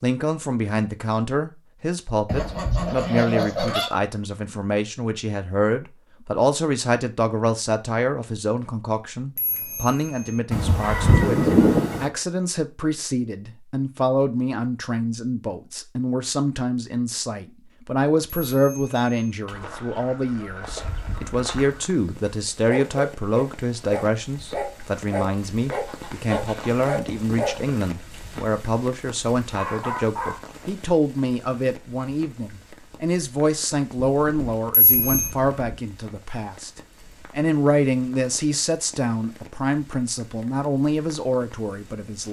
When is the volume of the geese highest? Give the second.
12 s.